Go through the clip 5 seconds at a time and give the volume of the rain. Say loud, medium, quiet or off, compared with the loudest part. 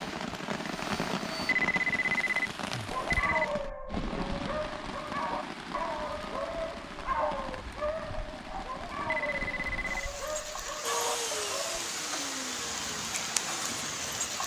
loud, medium, loud.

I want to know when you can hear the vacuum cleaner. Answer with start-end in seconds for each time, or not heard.
0.0-1.6, 10.8-14.4.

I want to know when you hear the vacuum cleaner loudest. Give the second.
11 s.